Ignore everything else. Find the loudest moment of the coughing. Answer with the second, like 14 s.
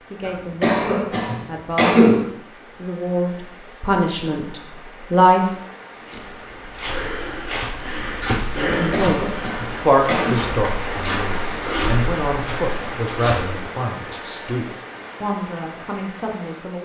2 s.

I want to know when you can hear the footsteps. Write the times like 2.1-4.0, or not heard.
6.0-13.7.